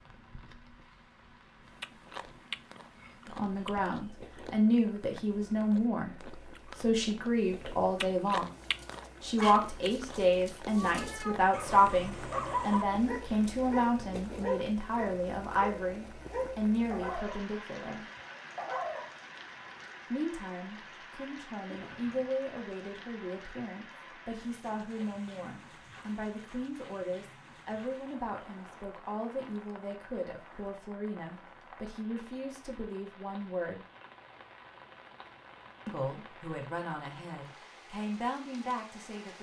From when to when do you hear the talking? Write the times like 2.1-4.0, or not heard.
3.2-8.5, 9.2-18.1, 20.1-33.9, 35.9-39.3.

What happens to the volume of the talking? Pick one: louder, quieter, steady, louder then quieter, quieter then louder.
quieter.